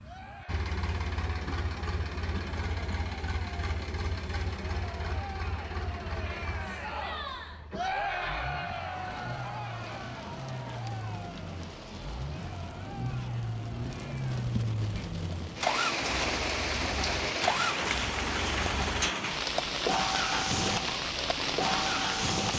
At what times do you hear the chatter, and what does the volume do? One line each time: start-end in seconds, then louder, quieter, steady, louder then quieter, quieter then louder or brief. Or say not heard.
0.0-14.4 louder then quieter.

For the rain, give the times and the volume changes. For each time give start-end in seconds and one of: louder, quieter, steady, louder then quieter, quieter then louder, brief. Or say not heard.
8.7-22.5 louder.